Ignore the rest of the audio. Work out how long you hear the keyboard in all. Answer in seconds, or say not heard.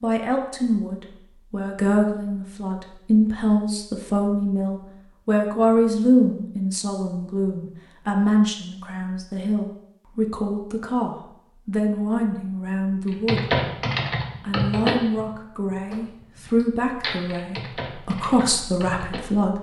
6 s.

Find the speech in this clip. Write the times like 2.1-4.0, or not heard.
0.0-13.6, 14.4-19.5.